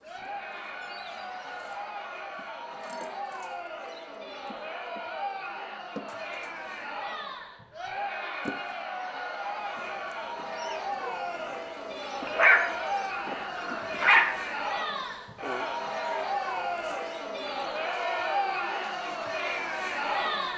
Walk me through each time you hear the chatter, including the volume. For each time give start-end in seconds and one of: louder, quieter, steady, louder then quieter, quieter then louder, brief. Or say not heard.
0.0-20.5 louder.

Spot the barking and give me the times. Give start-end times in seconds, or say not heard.
12.2-14.5.